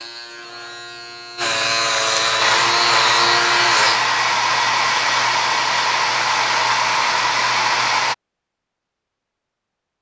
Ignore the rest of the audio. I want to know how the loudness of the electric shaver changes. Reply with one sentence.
The volume of the electric shaver goes up.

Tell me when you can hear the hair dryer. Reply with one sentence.
You can hear the hair dryer from 2.4 to 8.2 s.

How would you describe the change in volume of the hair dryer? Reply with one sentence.
The loudness of the hair dryer stays about the same.